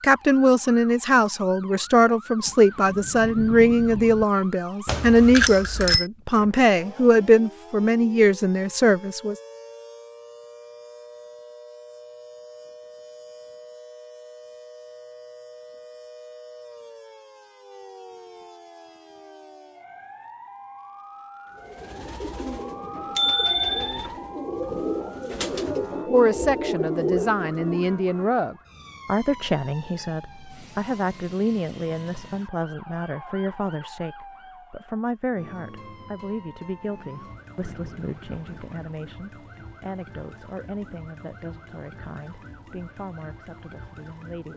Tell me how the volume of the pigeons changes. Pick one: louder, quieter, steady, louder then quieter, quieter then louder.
louder.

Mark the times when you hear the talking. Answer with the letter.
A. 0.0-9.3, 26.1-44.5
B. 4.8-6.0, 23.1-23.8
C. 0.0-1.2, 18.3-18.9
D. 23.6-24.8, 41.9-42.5
A.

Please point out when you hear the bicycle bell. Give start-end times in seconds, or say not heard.
4.8-6.0, 23.1-23.8.